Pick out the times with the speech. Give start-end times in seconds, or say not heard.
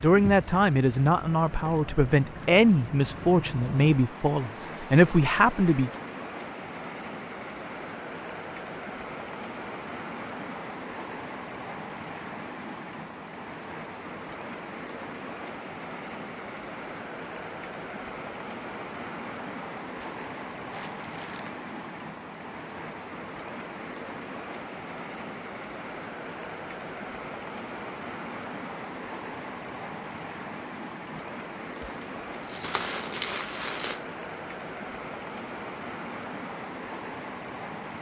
0.0-5.9.